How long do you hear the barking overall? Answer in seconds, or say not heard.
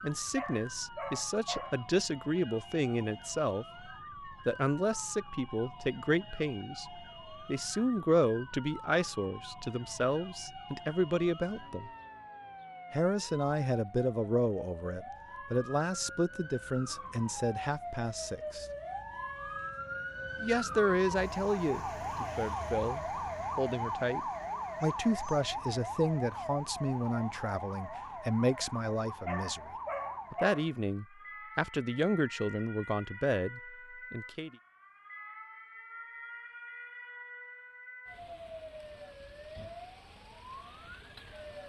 3 s.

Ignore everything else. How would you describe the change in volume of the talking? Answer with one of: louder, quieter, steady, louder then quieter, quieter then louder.
steady.